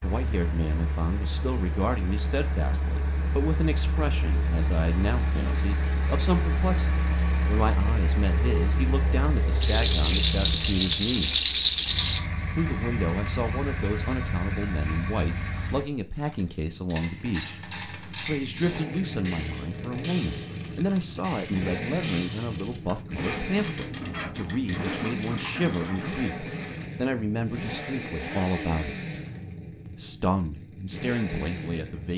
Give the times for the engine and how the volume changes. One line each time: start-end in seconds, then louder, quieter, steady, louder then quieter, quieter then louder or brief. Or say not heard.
0.0-32.1 steady.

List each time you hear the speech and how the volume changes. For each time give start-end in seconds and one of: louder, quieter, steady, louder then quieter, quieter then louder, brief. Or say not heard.
0.0-11.4 steady
12.6-17.6 steady
18.2-29.0 steady
29.9-32.1 brief.